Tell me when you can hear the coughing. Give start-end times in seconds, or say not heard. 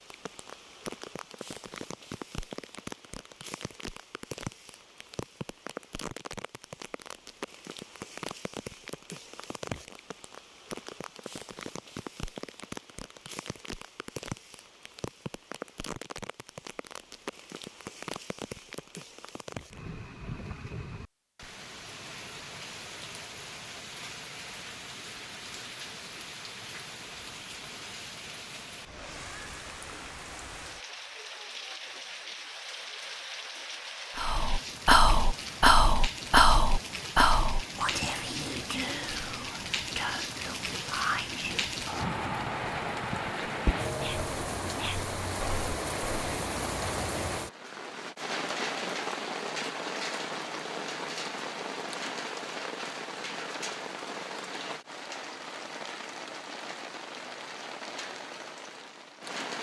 not heard.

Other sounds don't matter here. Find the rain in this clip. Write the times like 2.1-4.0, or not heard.
0.0-59.5.